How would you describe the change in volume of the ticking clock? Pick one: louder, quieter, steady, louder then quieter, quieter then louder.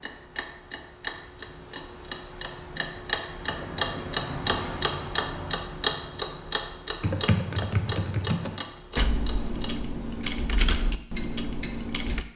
louder then quieter.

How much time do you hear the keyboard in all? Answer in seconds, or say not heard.
5 s.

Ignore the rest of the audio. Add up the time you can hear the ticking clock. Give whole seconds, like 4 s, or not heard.
12 s.